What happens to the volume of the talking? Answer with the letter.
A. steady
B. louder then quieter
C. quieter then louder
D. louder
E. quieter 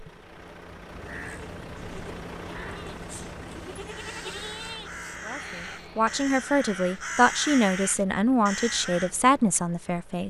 A.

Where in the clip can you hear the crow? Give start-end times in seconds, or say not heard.
0.9-9.1.